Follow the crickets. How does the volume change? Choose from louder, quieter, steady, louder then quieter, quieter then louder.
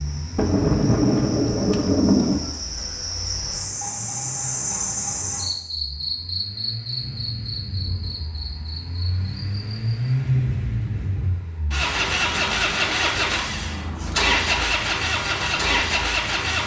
louder then quieter.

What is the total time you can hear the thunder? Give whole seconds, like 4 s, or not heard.
2 s.